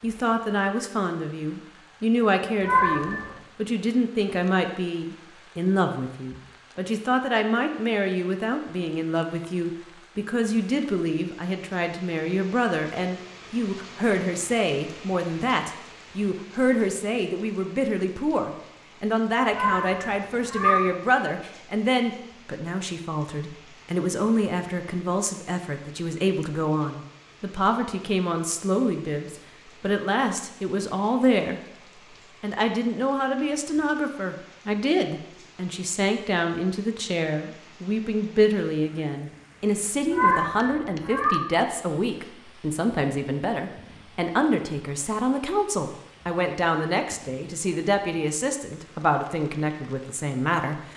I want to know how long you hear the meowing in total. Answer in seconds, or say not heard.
3 s.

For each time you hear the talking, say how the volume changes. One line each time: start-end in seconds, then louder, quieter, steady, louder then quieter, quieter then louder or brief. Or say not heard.
0.0-50.9 steady.